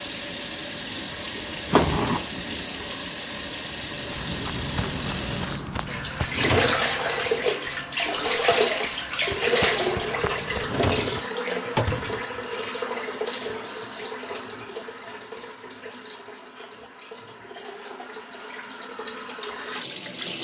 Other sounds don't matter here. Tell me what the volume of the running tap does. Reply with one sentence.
The volume of the running tap goes down.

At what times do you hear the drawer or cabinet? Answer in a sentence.
The drawer or cabinet can be heard from 6.2 to 6.8 s and from 10.6 to 12.1 s.